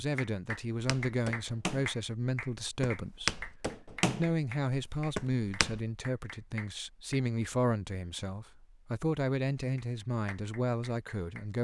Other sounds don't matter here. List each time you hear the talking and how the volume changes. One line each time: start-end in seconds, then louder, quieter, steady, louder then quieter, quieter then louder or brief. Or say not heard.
0.0-11.5 steady.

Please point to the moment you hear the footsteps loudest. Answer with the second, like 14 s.
3 s.